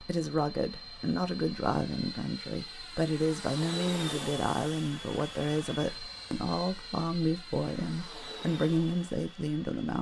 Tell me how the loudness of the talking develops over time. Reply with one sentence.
The loudness of the talking stays about the same.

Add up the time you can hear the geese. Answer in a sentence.
You can't hear the geese here.